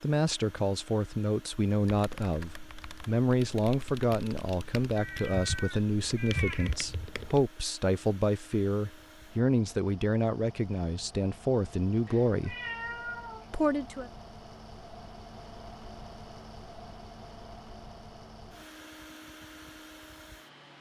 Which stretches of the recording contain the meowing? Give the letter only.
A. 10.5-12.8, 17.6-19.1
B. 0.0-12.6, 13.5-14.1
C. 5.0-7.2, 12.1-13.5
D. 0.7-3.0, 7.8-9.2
C.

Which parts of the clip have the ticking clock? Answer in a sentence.
You can't hear the ticking clock here.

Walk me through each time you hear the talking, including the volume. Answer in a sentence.
You can hear the talking from 0.0 to 12.6 s, at a steady volume; and briefly from 13.5 to 14.1 s.